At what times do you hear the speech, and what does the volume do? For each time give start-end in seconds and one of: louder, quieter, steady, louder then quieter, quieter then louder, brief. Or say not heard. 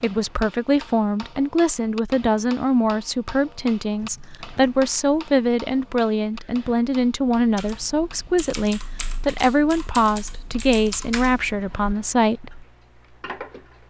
0.0-12.7 steady.